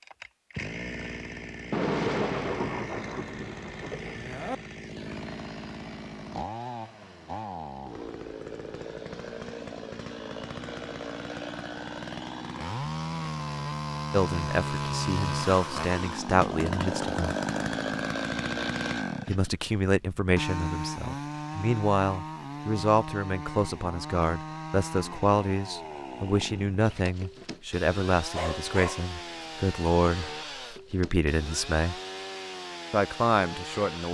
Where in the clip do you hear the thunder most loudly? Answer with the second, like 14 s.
2 s.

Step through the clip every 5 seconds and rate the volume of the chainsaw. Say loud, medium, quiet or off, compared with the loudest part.
medium, medium, loud, loud, medium, medium, medium.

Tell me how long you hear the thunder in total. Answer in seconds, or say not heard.
3 s.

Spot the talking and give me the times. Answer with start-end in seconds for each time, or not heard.
14.1-17.4, 19.2-30.3, 30.9-31.9, 32.9-34.0.